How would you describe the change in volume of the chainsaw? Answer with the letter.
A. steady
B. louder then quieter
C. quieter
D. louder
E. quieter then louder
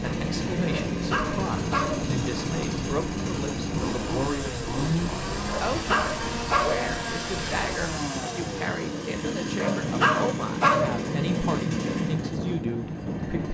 A.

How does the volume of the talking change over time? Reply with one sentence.
The loudness of the talking stays about the same.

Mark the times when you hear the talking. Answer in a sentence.
The talking can be heard from 0.0 to 13.5 s.